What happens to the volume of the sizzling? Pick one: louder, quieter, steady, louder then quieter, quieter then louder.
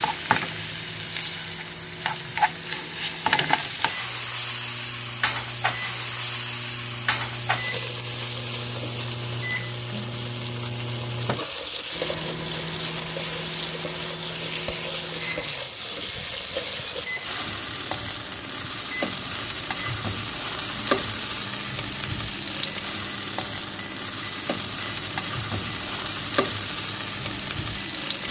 steady.